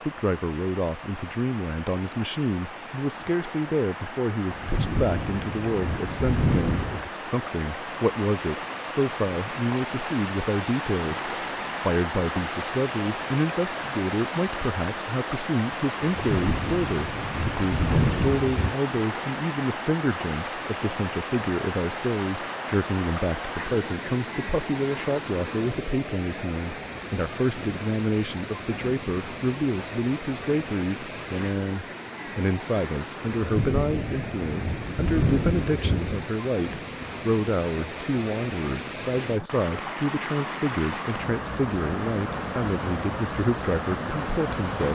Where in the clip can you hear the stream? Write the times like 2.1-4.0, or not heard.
0.0-44.9.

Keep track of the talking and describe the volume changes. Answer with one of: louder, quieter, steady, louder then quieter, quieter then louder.
steady.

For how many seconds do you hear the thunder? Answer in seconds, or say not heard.
8 s.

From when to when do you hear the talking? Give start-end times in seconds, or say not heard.
0.1-44.9.